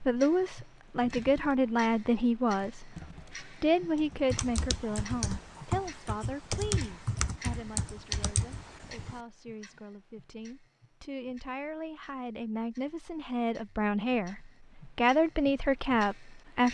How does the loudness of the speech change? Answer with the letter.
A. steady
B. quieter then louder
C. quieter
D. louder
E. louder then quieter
B.